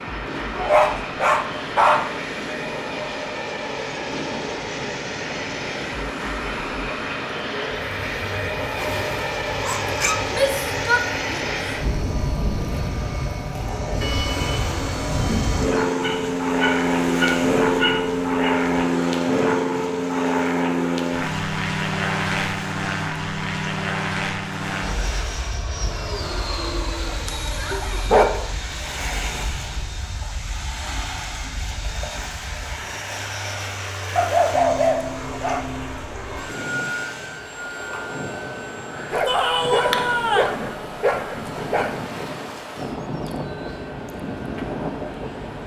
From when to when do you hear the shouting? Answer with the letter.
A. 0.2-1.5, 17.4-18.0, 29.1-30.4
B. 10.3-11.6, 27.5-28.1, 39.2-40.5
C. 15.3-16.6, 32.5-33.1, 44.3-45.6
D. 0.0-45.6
B.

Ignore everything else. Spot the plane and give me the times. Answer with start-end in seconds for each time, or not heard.
0.0-45.6.